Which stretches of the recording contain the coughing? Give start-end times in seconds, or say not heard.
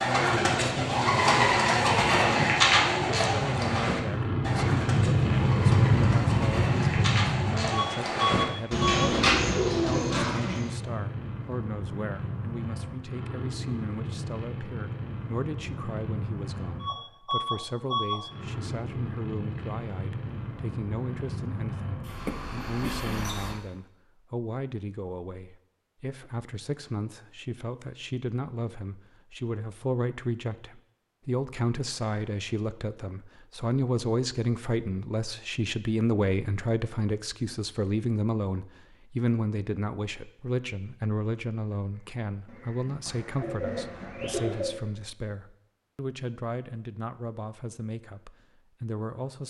22.2-23.1.